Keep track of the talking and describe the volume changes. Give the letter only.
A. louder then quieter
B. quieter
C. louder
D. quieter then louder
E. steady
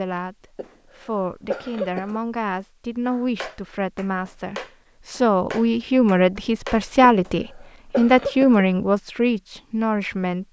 C.